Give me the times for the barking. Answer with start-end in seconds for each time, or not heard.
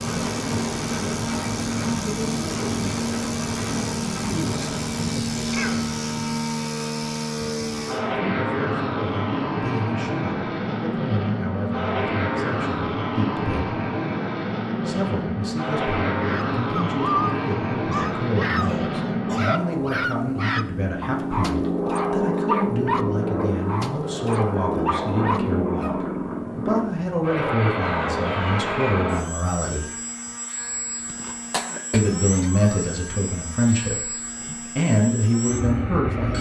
16.2-26.0.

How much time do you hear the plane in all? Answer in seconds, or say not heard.
36 s.